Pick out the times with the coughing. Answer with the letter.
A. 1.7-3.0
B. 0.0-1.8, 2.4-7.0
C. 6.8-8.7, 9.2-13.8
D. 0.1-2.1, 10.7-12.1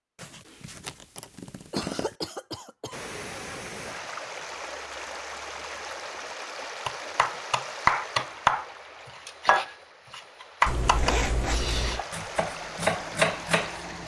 A.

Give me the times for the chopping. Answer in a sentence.
The chopping can be heard from 6.8 to 8.7 s and from 9.2 to 13.8 s.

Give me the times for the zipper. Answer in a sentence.
You can hear the zipper from 0.1 to 2.1 s and from 10.7 to 12.1 s.